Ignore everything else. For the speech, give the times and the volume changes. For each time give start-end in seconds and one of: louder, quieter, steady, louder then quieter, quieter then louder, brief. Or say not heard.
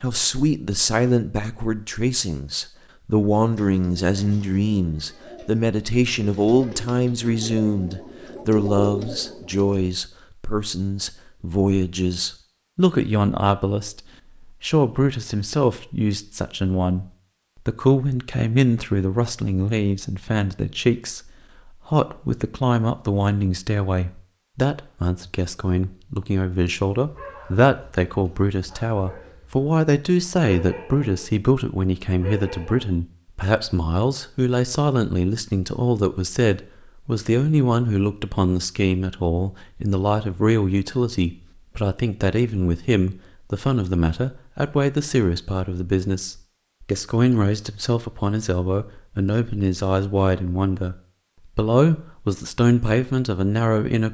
0.0-17.1 steady
17.6-51.0 steady
51.5-54.0 brief.